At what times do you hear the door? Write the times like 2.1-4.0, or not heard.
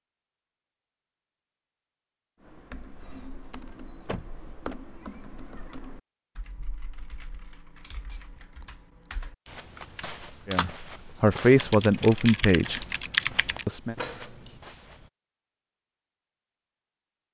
4.0-4.8, 13.9-14.6.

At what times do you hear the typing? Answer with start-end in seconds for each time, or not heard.
2.4-13.7.